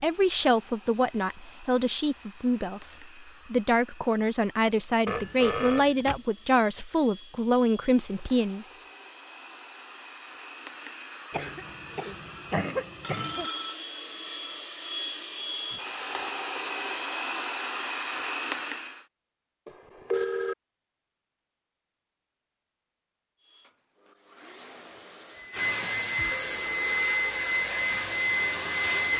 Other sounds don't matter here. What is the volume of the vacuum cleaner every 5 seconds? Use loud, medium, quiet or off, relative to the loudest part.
quiet, quiet, quiet, medium, quiet, loud.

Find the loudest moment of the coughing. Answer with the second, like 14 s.
13 s.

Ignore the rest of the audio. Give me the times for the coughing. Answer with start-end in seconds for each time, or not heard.
11.3-13.5.